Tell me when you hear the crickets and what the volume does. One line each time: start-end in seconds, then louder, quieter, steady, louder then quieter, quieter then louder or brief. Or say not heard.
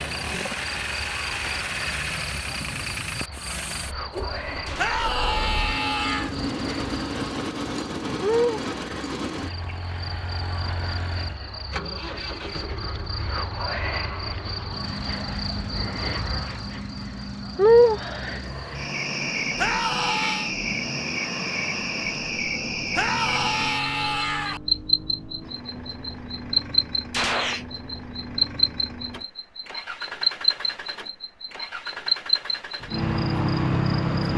0.0-34.3 louder.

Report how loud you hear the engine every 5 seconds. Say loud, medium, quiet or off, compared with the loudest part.
loud, loud, medium, medium, medium, medium, medium.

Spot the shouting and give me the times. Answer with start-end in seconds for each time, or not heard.
4.8-6.3, 19.6-20.6, 22.9-24.6.